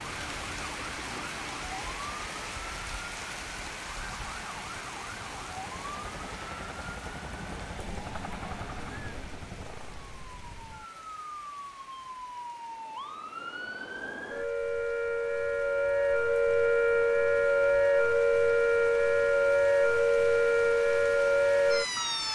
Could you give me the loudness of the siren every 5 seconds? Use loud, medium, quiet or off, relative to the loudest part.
quiet, quiet, quiet, loud, loud.